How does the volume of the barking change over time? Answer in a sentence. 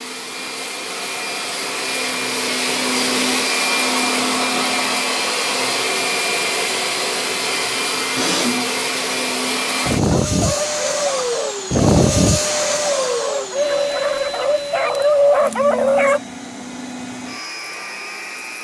The volume of the barking goes up.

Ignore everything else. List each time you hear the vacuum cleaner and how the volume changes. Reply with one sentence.
The vacuum cleaner can be heard from 0.0 to 18.5 s, getting quieter.